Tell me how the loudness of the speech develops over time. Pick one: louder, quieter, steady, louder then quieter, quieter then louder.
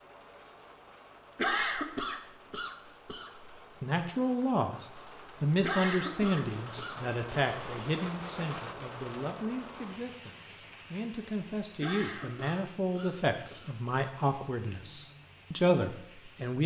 quieter then louder.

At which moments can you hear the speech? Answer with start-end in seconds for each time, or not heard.
3.8-16.6.